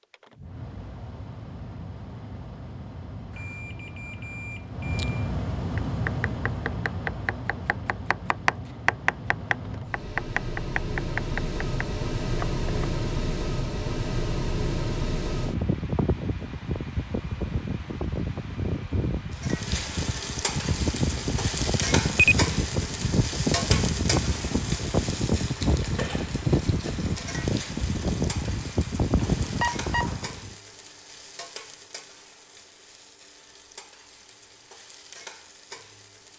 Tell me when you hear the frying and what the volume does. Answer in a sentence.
You can hear the frying from 19.3 to 36.3 s, getting quieter.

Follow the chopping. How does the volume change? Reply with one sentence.
The volume of the chopping goes up, then down.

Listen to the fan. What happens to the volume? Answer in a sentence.
The volume of the fan goes up.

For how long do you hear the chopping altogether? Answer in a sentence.
The chopping can be heard for 7 seconds in total.